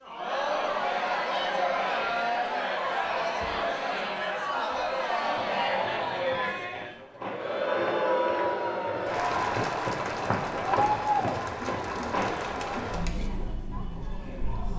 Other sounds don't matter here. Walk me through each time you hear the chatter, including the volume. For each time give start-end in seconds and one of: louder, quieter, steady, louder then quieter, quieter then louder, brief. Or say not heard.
0.1-14.7 quieter.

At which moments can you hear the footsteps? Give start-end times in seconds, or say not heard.
5.3-12.5.